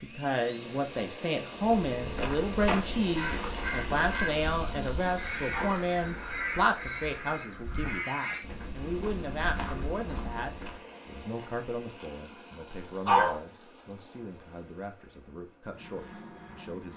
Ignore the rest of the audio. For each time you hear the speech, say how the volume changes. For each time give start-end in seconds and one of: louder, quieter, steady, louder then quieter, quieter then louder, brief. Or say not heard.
0.0-16.9 quieter.